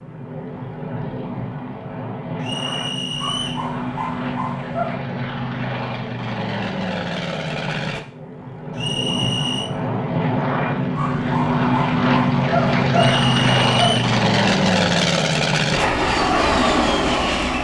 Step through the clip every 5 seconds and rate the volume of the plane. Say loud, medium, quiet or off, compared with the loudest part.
medium, medium, loud, loud.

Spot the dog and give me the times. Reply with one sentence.
You can hear the dog from 3.2 to 5.0 s and from 10.9 to 13.9 s.